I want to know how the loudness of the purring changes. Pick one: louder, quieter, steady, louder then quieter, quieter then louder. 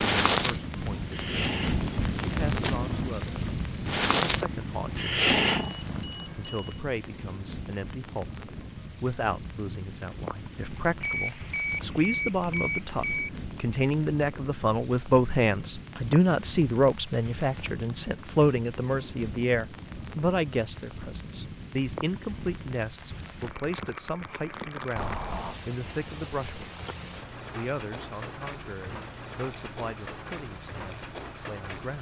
louder.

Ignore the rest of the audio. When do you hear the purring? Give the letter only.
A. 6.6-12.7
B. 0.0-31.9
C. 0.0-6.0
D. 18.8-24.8
C.